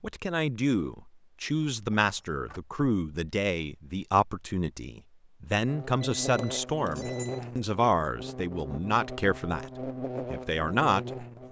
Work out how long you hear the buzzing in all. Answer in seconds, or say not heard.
6 s.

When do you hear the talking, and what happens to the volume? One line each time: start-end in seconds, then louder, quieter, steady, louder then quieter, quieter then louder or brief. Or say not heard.
0.0-11.4 steady.